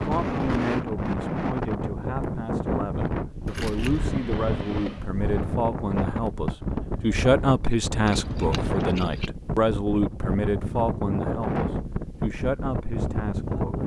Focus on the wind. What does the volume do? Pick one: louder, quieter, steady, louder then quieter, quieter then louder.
steady.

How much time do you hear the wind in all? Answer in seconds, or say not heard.
14 s.